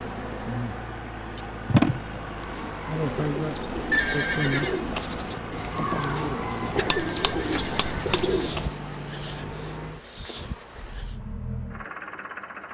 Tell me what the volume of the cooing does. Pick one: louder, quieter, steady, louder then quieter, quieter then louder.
louder.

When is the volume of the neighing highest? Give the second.
4 s.